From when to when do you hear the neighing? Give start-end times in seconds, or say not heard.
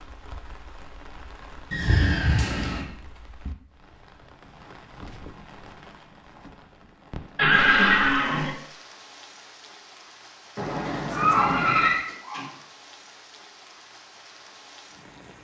1.7-2.9, 7.3-8.5, 10.6-12.1.